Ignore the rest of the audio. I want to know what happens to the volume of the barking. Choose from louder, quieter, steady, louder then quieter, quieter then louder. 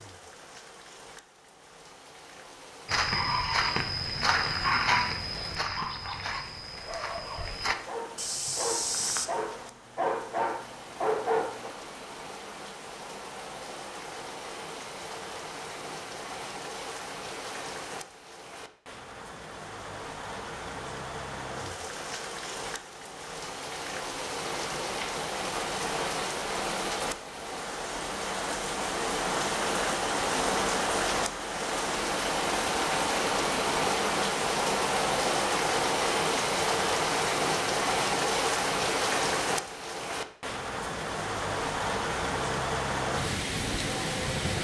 quieter then louder.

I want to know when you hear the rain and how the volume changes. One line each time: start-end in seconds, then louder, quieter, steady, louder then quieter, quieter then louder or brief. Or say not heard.
0.0-44.5 louder.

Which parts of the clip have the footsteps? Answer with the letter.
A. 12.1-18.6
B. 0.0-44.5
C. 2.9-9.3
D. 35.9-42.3
C.